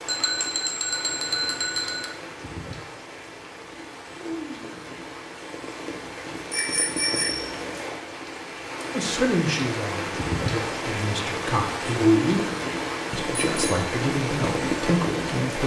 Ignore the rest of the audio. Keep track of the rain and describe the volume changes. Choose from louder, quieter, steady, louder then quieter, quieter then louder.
louder.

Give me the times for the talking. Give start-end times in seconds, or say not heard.
8.9-12.4, 13.1-15.6.